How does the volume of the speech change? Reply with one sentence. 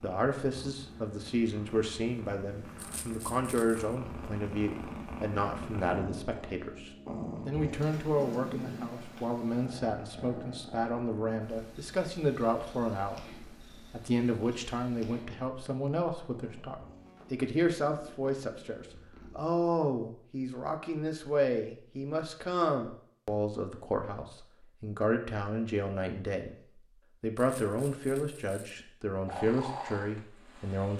The loudness of the speech stays about the same.